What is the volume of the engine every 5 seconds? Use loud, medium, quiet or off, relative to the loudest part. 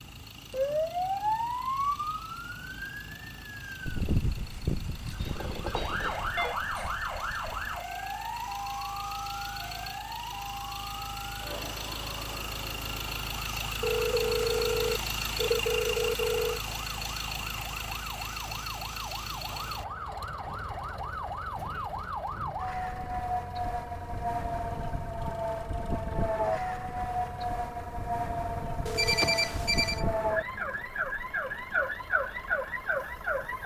quiet, medium, loud, loud, quiet, quiet, quiet.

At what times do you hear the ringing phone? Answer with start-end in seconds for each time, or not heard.
5.2-6.5, 13.8-16.6, 28.9-30.1.